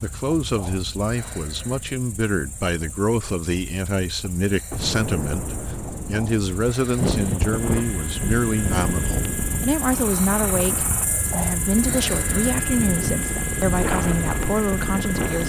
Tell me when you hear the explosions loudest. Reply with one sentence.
The loudest moment of the explosions is at 5 seconds.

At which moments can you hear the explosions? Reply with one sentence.
The explosions can be heard from 4.7 to 6.7 s.